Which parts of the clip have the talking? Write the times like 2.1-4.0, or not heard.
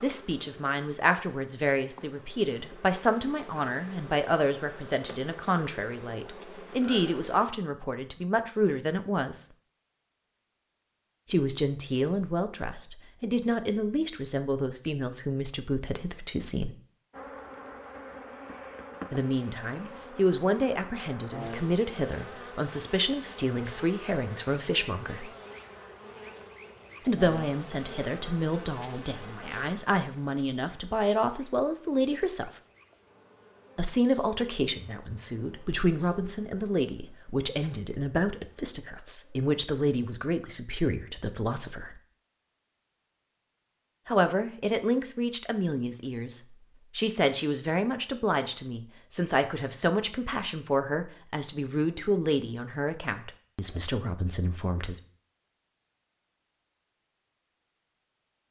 0.0-9.4, 11.3-16.8, 19.1-25.3, 27.1-32.5, 33.8-42.0, 44.0-55.0.